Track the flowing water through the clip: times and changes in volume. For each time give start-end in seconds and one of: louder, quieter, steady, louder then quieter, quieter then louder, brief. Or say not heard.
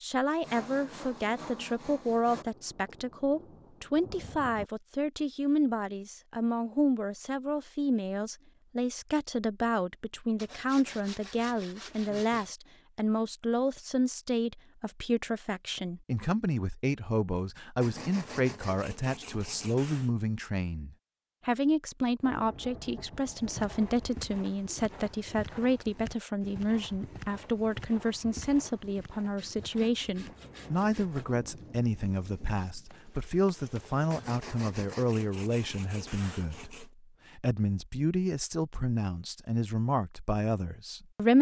not heard.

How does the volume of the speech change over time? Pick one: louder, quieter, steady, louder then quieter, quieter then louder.
steady.